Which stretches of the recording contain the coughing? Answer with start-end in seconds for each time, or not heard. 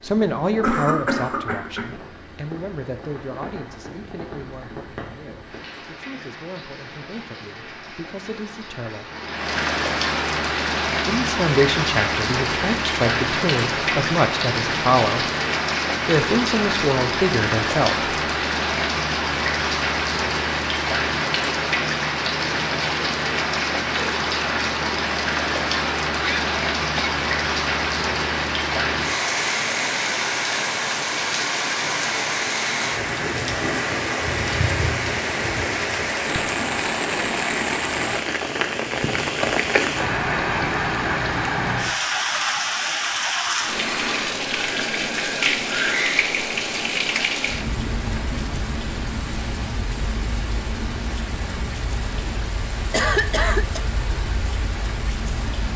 0.6-1.9, 26.2-27.1, 52.9-53.9.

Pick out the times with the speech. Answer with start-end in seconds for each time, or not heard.
0.0-9.1, 11.1-15.2, 16.1-18.1.